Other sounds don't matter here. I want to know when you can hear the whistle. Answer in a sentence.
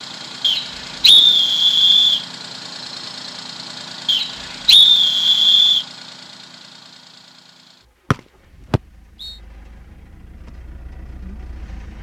The whistle can be heard from 0.4 to 2.2 s, from 4.0 to 5.8 s and from 8.1 to 9.3 s.